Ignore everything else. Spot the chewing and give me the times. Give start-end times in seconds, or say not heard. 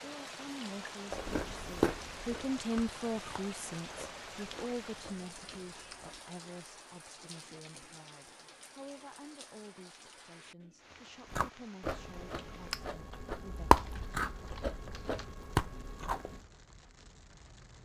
1.1-6.2, 11.3-16.4.